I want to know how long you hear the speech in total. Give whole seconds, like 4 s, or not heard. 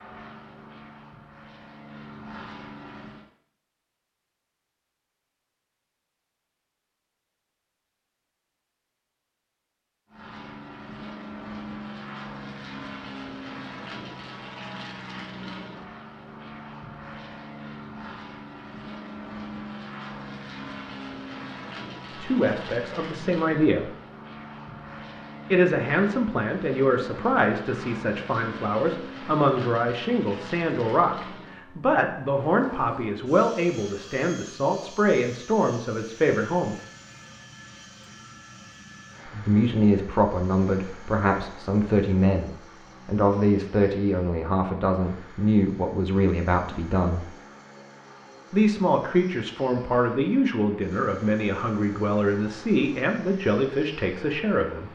27 s.